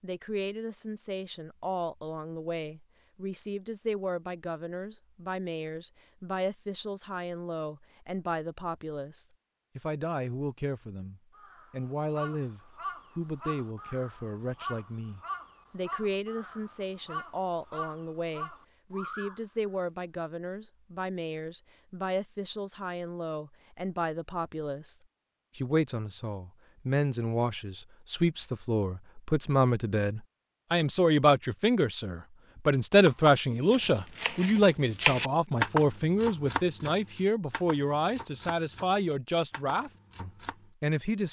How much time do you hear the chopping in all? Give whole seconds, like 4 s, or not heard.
8 s.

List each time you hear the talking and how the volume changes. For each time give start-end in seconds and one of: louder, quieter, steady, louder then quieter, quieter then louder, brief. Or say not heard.
0.0-24.9 steady
25.6-41.2 louder then quieter.